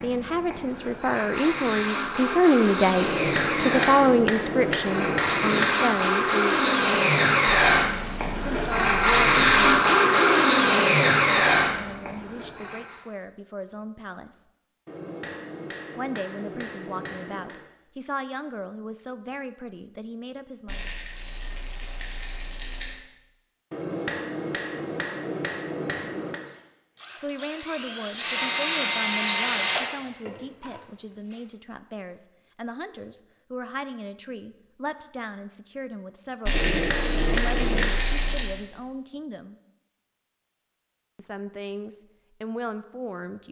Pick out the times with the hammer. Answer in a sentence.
You can hear the hammer from 3.0 to 5.8 s, from 14.8 to 17.6 s, from 23.7 to 26.4 s and from 36.5 to 38.0 s.